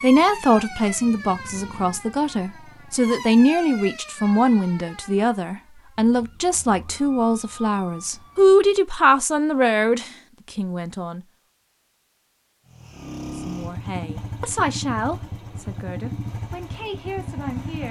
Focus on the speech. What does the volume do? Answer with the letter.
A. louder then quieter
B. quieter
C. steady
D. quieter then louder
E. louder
B.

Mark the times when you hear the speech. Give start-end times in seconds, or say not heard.
0.0-11.2, 13.3-17.8.